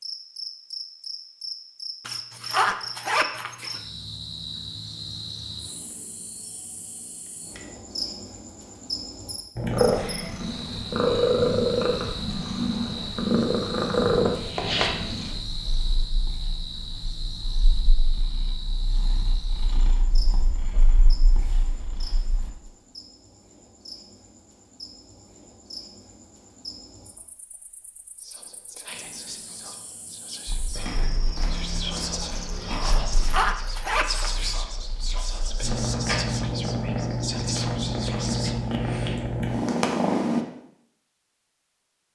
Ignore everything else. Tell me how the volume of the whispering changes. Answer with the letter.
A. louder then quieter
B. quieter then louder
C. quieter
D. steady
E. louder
E.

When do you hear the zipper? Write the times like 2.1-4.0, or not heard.
2.0-3.9, 32.9-34.5.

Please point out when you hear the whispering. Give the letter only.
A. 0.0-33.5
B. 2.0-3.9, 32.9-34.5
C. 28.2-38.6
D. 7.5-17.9
C.